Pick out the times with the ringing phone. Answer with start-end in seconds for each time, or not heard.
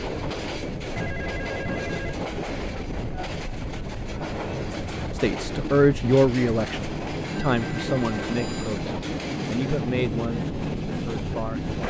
0.9-2.1, 7.3-8.8.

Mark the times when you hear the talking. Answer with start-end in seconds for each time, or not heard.
5.2-11.8.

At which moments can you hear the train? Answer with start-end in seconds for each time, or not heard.
0.0-11.8.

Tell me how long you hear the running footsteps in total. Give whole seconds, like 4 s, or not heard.
not heard.